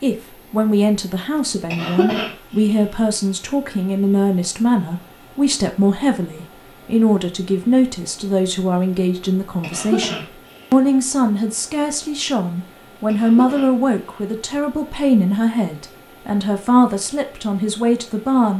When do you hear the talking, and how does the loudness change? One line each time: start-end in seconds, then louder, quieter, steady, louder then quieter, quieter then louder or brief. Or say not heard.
0.0-18.5 steady.